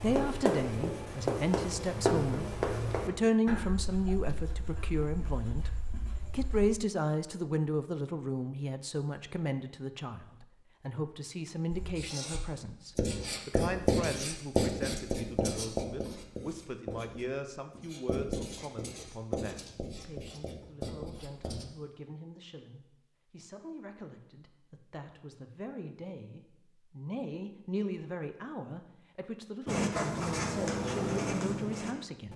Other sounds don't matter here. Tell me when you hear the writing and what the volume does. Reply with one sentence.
You can hear the writing from 0.0 to 6.7 s, getting quieter; from 11.7 to 21.6 s, getting quieter; and briefly from 29.6 to 32.3 s.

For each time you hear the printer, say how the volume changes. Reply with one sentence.
You can't hear the printer here.